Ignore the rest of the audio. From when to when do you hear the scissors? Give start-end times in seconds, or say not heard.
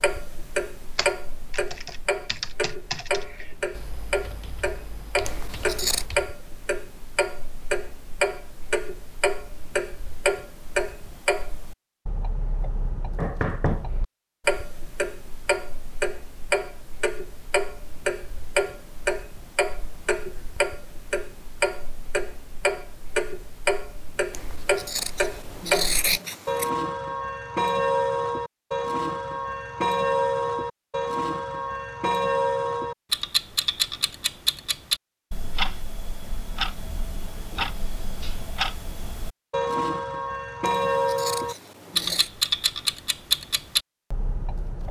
5.2-6.0, 24.3-26.7, 40.9-42.3.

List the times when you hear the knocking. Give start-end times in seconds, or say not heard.
13.2-13.8.